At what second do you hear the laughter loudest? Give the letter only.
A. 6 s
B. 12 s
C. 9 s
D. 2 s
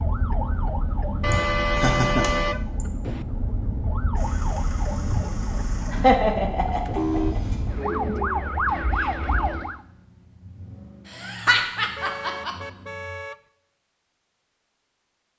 A.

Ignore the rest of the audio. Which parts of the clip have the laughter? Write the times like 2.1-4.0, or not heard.
1.3-2.9, 5.9-7.4, 11.1-12.6.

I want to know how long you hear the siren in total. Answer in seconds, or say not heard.
10 s.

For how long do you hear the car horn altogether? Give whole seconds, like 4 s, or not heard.
4 s.